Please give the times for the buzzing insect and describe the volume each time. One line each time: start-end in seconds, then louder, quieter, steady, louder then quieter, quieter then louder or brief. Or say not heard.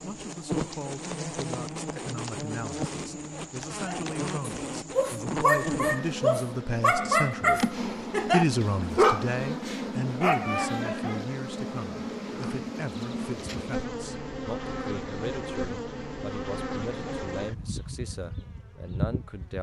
0.0-19.5 steady.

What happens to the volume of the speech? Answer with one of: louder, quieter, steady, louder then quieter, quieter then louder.
louder then quieter.